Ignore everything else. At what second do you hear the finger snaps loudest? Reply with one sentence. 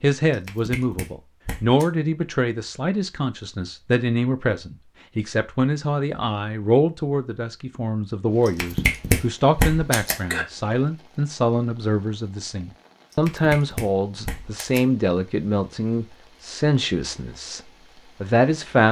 The loudest moment of the finger snaps is at 9 seconds.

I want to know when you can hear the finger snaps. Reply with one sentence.
You can hear the finger snaps from 0.3 to 1.9 s, from 8.4 to 10.4 s and from 13.1 to 14.8 s.